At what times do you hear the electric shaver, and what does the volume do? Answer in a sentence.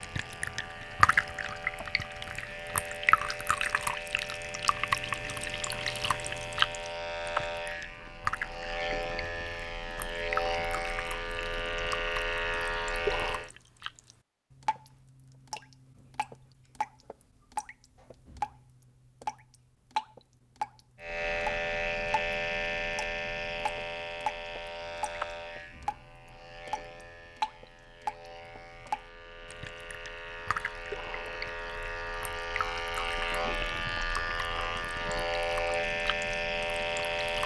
The electric shaver can be heard from 0.0 to 13.5 s, getting louder; and from 21.0 to 37.4 s, getting quieter then louder.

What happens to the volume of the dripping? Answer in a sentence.
The volume of the dripping goes down.